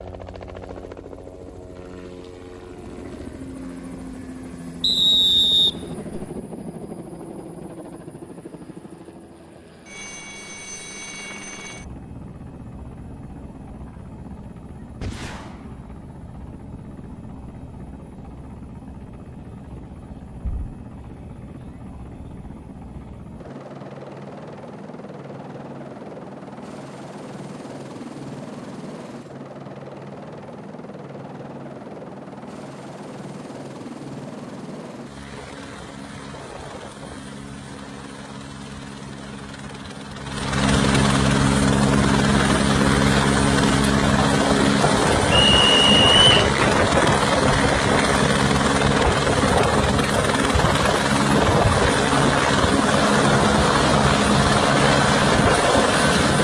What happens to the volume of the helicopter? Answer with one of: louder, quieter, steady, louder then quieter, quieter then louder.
louder.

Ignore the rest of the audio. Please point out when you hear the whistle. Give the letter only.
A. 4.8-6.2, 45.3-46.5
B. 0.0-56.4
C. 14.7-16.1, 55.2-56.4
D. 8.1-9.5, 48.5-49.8
A.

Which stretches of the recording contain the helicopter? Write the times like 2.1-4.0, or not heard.
0.0-56.4.